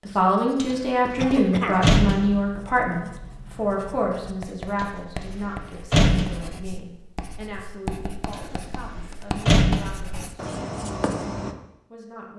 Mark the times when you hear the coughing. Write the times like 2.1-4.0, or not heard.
1.1-1.9.